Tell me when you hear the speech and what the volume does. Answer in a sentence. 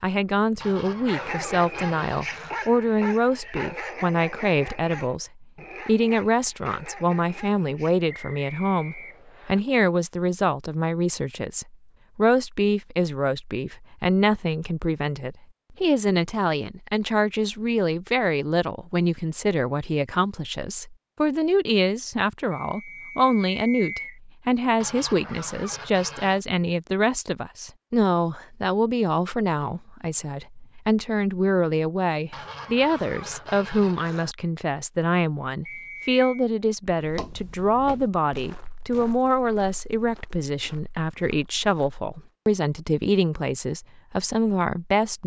You can hear the speech from 0.0 to 45.2 s, at a steady volume.